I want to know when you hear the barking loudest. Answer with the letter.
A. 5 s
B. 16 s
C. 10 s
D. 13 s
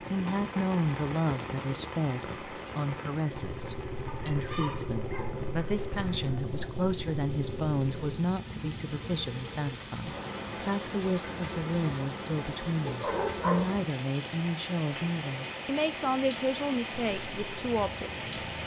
D.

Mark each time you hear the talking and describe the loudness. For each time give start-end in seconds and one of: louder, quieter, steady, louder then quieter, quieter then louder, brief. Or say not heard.
0.1-18.2 steady.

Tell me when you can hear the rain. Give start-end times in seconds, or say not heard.
0.0-18.6.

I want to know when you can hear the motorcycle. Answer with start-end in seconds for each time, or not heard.
3.2-8.2, 16.9-18.6.